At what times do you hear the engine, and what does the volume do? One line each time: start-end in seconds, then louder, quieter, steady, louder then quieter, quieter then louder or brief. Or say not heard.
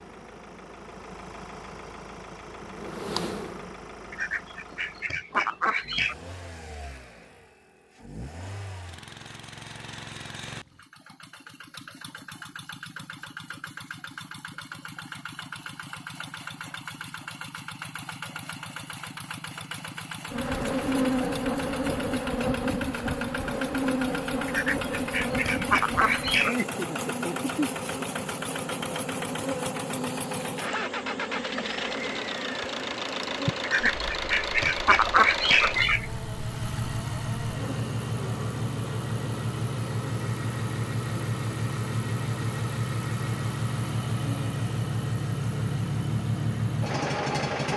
0.0-47.7 louder.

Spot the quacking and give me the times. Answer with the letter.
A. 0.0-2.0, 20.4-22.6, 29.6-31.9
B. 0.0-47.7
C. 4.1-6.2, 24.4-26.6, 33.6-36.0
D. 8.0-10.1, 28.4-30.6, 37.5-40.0
C.